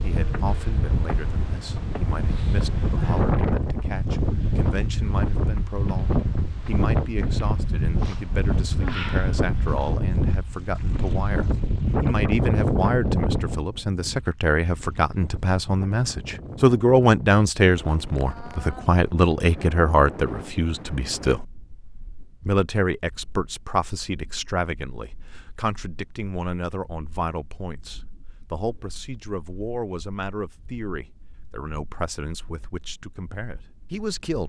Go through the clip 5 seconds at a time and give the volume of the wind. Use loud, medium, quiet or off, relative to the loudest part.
loud, loud, loud, quiet, quiet, quiet, quiet.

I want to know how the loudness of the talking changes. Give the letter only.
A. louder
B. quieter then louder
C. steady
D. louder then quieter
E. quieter
D.